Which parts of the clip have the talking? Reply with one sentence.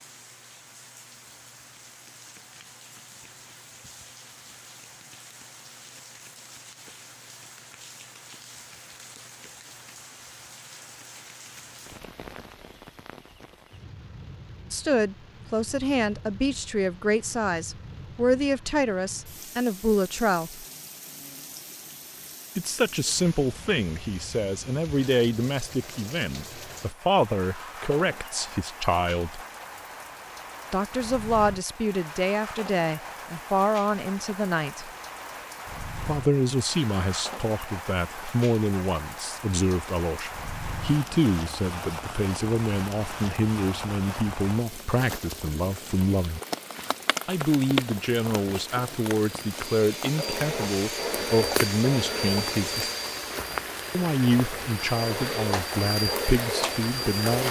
The talking can be heard from 14.7 to 20.6 s, from 22.6 to 29.4 s, from 30.7 to 34.9 s, from 36.0 to 46.4 s, from 47.2 to 52.9 s and from 53.9 to 57.4 s.